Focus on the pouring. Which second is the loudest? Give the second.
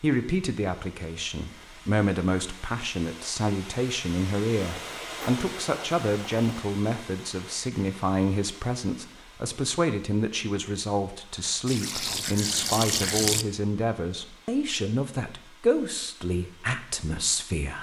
13 s.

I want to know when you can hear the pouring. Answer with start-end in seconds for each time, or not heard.
4.5-6.5, 11.7-13.4.